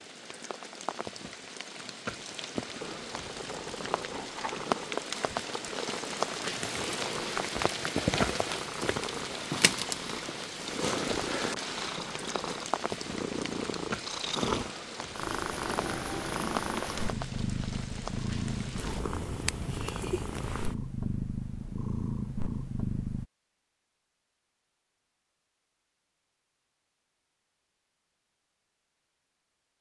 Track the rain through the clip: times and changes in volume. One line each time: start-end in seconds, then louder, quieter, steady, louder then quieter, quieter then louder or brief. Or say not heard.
0.0-19.0 louder then quieter.